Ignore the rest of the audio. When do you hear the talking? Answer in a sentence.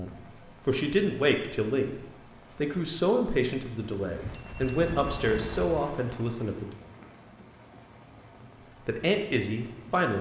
The talking can be heard from 0.0 to 1.9 s, from 2.5 to 6.7 s and from 8.8 to 10.1 s.